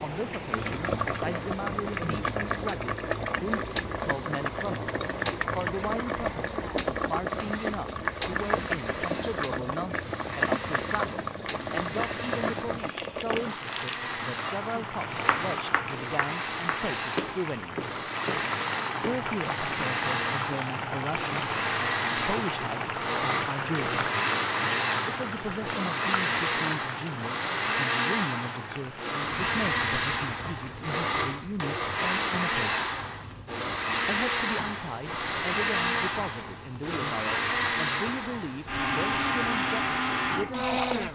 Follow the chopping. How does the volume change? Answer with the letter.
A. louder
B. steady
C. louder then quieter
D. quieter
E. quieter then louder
D.